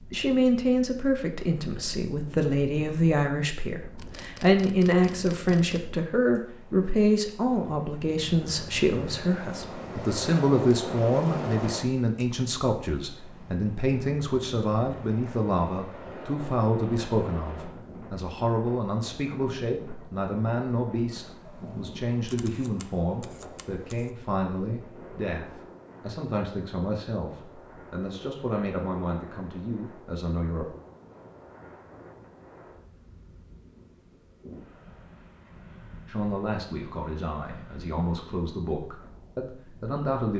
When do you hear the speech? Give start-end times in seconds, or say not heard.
0.1-30.8, 36.0-40.3.